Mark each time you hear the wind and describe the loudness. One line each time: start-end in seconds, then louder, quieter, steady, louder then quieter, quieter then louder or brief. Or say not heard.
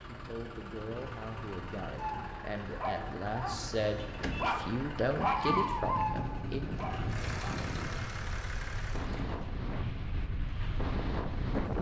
0.0-11.7 louder.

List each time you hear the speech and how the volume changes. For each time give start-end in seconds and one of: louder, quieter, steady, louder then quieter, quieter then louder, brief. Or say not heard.
0.0-6.6 louder.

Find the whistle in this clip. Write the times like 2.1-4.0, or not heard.
not heard.